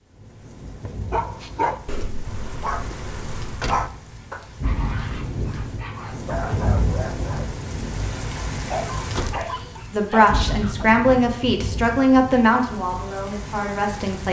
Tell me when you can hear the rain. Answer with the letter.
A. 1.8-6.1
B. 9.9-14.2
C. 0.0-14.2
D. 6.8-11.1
C.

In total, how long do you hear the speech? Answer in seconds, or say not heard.
4 s.